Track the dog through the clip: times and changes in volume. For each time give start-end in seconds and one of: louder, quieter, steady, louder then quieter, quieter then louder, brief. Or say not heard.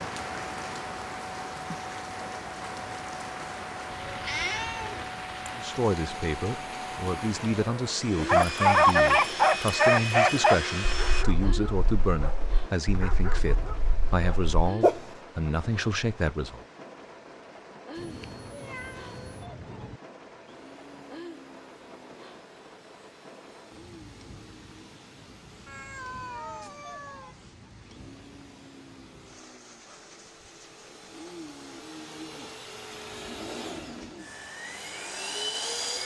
8.2-15.0 quieter.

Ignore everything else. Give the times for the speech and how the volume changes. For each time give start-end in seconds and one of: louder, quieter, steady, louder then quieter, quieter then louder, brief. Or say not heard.
5.5-16.6 steady.